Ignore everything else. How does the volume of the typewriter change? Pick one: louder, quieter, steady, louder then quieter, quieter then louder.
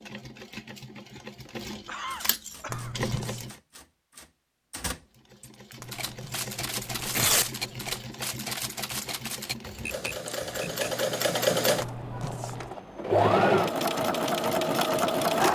louder.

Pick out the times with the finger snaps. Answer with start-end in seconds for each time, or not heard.
not heard.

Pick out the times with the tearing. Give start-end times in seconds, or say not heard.
2.6-3.5, 5.8-8.1, 11.8-12.8.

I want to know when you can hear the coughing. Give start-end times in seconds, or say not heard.
1.9-3.0.